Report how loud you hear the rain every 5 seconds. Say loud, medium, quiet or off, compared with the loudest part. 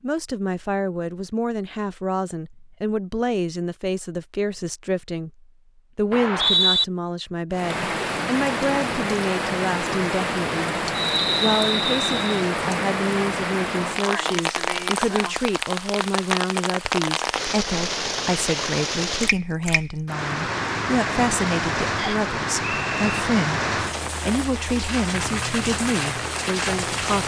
off, loud, loud, loud, loud, loud.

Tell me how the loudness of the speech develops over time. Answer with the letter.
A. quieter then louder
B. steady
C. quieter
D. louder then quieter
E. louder
B.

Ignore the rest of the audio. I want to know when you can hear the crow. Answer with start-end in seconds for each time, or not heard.
not heard.